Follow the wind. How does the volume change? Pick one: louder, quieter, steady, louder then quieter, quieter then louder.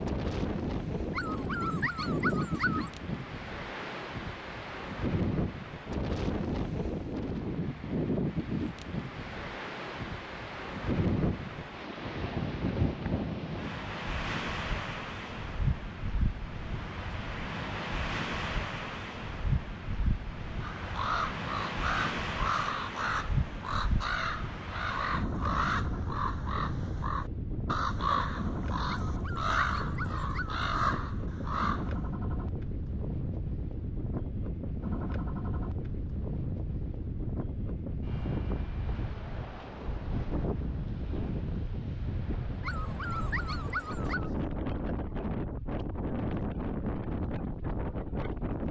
steady.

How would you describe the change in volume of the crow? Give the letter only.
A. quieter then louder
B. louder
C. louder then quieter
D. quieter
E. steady
E.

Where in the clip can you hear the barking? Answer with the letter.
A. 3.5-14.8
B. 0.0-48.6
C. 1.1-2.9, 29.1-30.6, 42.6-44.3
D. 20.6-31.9
C.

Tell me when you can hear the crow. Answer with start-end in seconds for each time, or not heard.
20.6-31.9.